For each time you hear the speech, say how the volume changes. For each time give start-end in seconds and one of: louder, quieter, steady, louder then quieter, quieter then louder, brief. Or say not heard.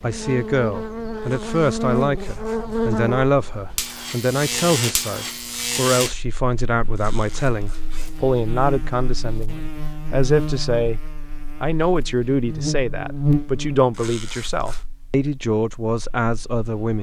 0.0-11.0 steady
11.6-16.9 steady.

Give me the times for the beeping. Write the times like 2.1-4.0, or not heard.
not heard.